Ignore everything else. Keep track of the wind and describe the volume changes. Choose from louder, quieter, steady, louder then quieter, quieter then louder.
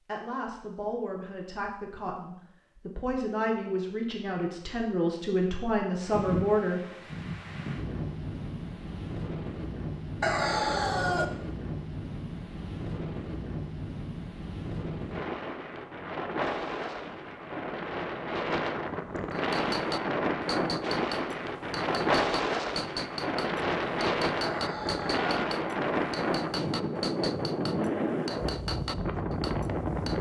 louder.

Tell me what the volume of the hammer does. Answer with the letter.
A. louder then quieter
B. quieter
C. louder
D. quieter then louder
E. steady
E.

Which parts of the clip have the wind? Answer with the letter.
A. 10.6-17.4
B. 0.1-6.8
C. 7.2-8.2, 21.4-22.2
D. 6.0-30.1
D.